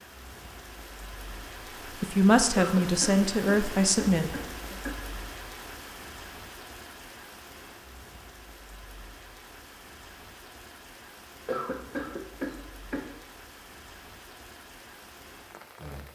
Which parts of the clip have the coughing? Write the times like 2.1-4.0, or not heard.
2.5-5.0, 11.4-13.1.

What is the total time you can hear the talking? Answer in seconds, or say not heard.
3 s.